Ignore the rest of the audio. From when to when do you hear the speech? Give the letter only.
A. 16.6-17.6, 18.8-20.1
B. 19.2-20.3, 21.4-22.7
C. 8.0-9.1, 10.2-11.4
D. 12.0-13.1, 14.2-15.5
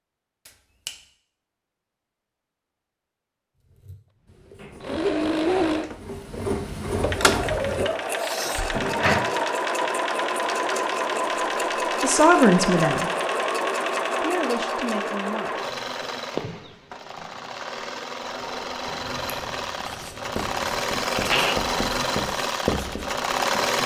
D.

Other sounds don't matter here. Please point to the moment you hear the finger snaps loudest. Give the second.
9 s.